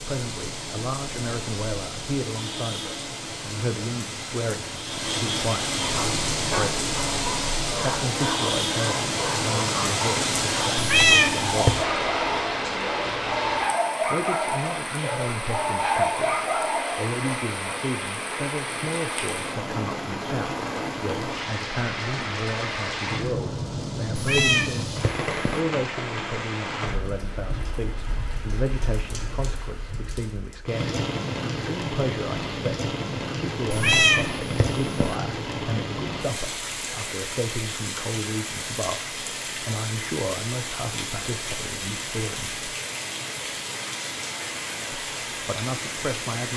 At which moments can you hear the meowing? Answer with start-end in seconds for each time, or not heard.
10.8-11.8, 24.1-25.6, 33.7-35.1.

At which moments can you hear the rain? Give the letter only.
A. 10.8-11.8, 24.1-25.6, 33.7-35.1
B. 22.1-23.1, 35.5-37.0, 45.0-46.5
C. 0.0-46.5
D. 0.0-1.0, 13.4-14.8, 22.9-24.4
C.